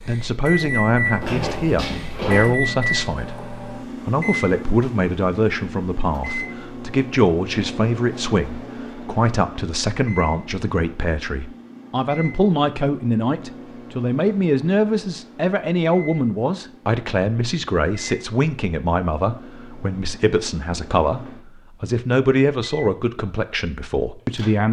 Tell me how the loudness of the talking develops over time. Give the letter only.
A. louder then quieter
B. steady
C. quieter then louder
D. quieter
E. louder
B.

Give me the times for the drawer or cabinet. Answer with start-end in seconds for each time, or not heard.
1.2-2.5.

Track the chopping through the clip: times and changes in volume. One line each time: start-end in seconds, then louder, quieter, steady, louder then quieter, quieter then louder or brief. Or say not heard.
not heard.